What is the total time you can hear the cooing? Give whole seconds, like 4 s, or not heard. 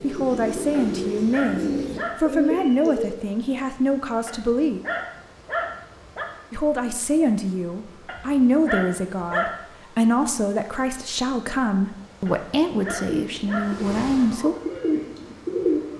6 s.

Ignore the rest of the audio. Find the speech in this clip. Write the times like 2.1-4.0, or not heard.
0.0-4.8, 6.5-14.6.